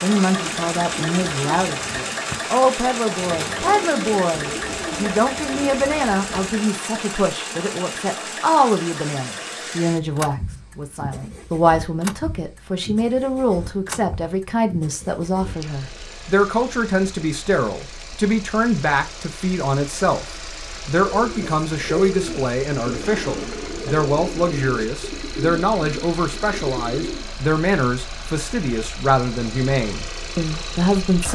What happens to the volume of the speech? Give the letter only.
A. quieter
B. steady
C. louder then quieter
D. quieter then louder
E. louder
B.